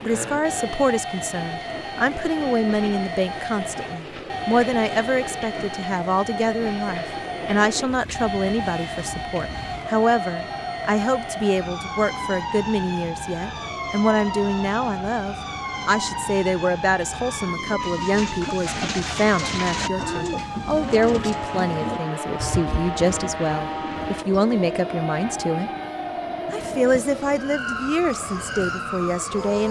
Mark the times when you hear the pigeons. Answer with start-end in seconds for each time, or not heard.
17.8-24.2.